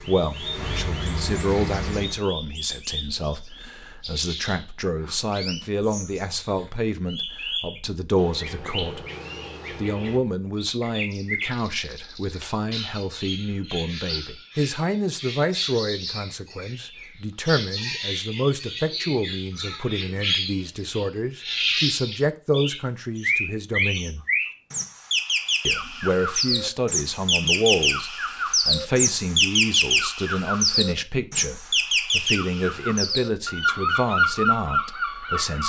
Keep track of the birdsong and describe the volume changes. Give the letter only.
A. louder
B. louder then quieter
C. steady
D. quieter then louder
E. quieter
A.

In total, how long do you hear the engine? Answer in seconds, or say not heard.
2 s.